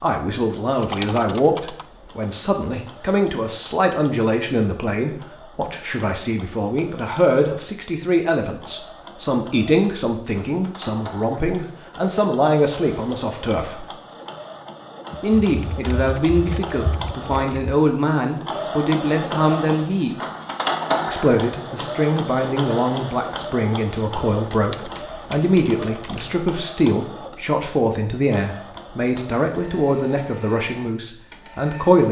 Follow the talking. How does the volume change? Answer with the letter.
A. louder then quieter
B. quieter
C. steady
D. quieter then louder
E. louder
C.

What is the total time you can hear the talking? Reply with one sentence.
You can hear the talking for 30 seconds altogether.